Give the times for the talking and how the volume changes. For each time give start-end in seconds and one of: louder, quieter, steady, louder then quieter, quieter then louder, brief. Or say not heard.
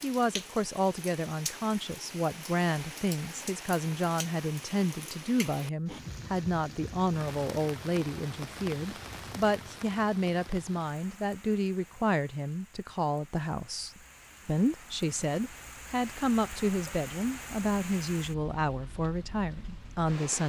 0.0-20.4 steady.